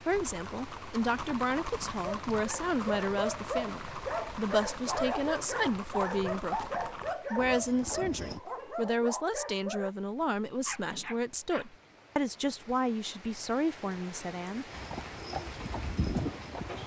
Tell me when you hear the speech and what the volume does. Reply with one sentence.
The speech can be heard from 0.1 to 14.8 s, at a steady volume.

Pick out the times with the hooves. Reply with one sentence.
The hooves can be heard from 0.1 to 8.4 s and from 14.7 to 16.8 s.